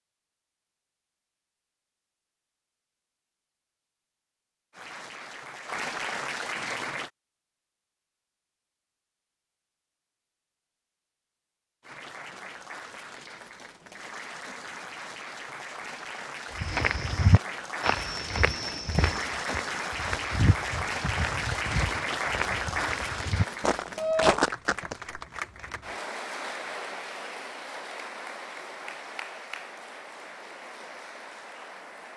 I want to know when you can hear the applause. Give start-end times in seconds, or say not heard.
4.7-7.1, 11.8-32.1.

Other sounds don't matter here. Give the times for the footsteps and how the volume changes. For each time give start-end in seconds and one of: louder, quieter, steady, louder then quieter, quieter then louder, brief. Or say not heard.
16.6-24.9 quieter then louder.